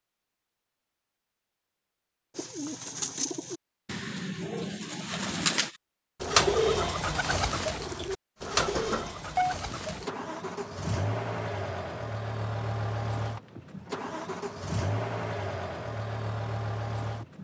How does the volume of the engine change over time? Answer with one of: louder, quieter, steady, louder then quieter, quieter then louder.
steady.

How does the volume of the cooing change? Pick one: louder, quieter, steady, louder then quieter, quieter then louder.
louder then quieter.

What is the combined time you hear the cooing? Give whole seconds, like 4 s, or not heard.
8 s.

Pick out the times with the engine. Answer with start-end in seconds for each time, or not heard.
8.4-17.3.